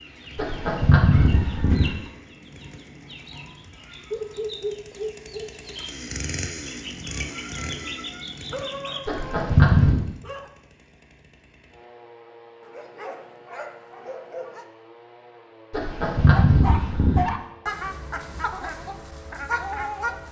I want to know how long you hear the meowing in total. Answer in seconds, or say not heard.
4 s.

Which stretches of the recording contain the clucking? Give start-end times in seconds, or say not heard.
0.0-9.0, 16.3-20.2.